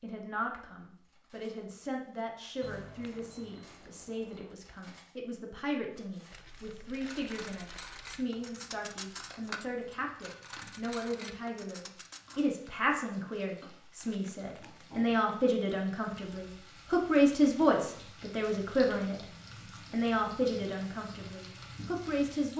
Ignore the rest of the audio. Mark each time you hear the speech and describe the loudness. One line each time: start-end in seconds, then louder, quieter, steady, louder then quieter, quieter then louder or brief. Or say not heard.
0.0-19.2 louder
19.9-22.5 brief.